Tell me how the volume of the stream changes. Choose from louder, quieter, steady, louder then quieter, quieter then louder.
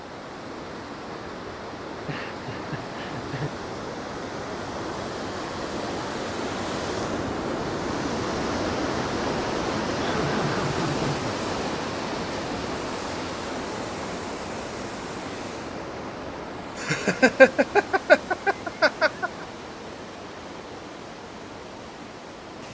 louder then quieter.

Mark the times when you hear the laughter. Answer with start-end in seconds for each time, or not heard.
2.0-3.6, 9.9-11.3, 16.8-19.3.